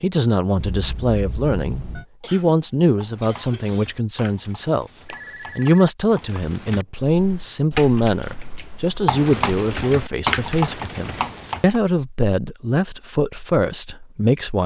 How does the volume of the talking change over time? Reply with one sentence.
The loudness of the talking stays about the same.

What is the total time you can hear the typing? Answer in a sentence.
The typing can be heard for 9 seconds in total.